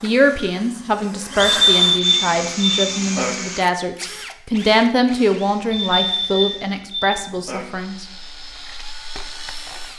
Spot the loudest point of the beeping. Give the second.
2 s.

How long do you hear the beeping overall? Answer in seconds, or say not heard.
4 s.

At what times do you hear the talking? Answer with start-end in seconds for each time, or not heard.
0.0-8.1.